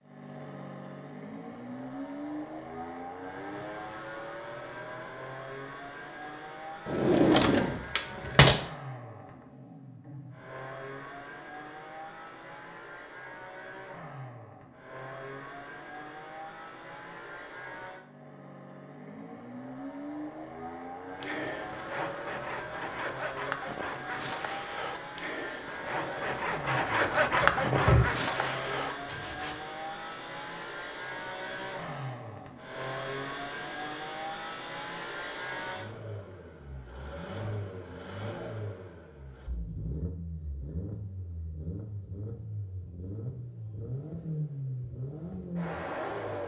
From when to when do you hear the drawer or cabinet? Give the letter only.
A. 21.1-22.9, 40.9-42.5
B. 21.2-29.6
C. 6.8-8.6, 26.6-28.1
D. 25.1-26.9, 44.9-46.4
C.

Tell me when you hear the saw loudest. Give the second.
27 s.